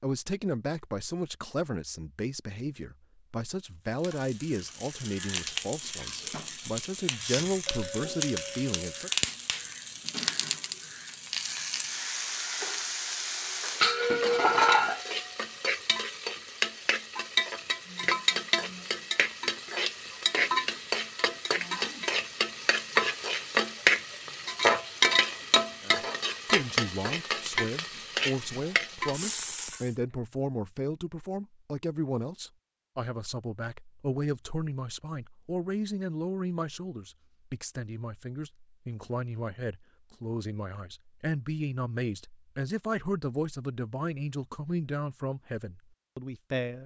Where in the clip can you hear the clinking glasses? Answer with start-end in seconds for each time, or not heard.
7.7-9.1.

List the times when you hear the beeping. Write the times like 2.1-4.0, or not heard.
not heard.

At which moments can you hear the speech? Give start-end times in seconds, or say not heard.
0.0-9.1, 25.8-46.8.